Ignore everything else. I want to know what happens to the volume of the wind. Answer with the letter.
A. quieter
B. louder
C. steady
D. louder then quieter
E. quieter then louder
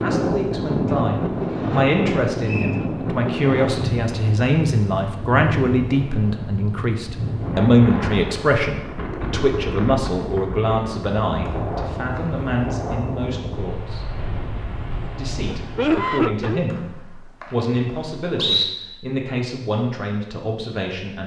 A.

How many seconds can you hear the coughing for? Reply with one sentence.
The coughing can be heard for 2 seconds in total.